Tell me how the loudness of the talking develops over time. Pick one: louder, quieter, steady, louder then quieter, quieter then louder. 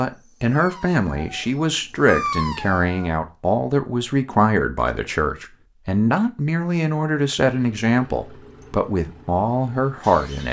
steady.